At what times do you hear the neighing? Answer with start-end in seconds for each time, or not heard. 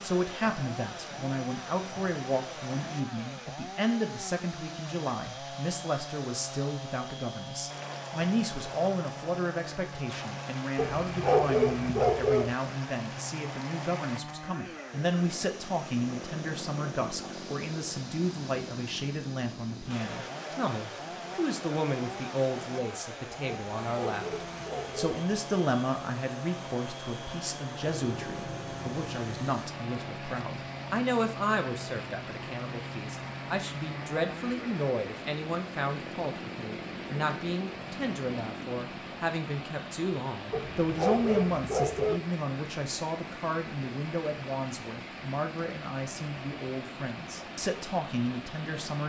27.8-29.6.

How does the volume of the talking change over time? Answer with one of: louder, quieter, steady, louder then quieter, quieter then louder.
steady.